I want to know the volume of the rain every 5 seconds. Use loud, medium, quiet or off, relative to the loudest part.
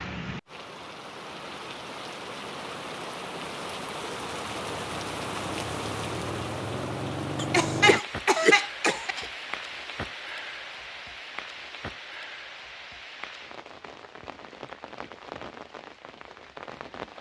loud, loud, medium, medium.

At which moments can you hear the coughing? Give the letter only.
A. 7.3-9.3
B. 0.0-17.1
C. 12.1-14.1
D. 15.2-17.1
A.